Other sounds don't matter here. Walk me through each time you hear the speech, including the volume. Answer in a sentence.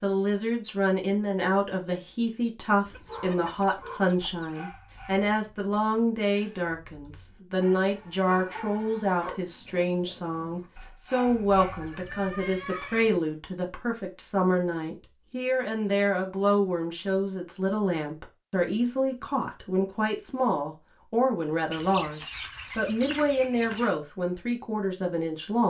You can hear the speech from 0.0 to 25.6 s, at a steady volume.